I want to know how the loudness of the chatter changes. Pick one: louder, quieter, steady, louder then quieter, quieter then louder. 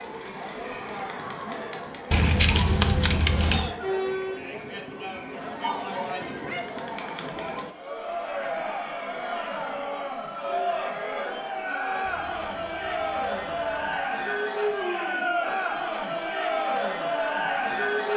louder.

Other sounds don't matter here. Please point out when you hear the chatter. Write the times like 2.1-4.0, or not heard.
0.0-18.1.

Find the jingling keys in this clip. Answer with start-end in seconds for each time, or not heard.
2.1-3.8, 12.1-14.1.